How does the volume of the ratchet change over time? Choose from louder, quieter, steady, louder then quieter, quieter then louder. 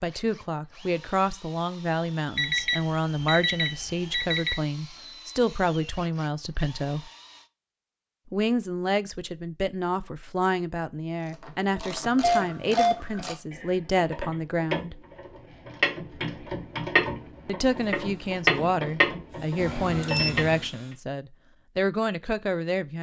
louder.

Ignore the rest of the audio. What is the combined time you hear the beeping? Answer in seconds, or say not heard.
4 s.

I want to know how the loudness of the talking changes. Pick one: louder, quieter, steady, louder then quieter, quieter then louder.
steady.